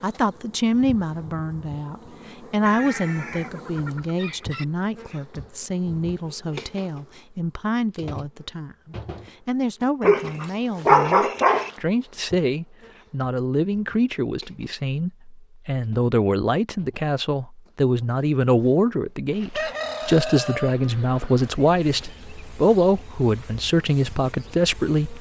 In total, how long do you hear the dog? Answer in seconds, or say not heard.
2 s.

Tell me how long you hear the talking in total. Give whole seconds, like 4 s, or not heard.
25 s.